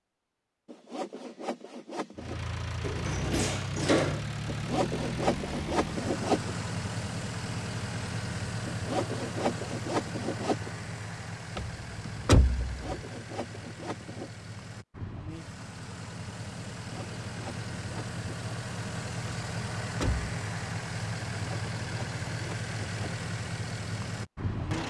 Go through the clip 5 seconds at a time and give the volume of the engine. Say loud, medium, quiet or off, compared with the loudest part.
loud, loud, medium, loud, loud.